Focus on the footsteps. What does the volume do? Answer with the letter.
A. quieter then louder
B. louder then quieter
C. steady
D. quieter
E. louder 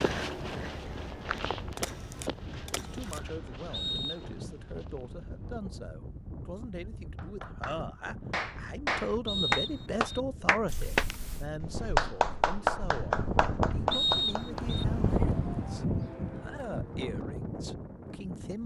D.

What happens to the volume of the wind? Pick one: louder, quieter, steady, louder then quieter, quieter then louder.
louder.